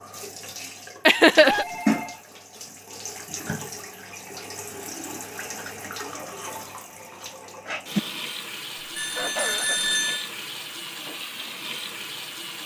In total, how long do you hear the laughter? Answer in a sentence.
The laughter can be heard for 2 seconds in total.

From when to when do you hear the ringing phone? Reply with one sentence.
The ringing phone can be heard from 1.4 to 2.2 s and from 8.9 to 10.3 s.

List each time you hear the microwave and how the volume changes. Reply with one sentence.
The microwave can't be heard in this clip.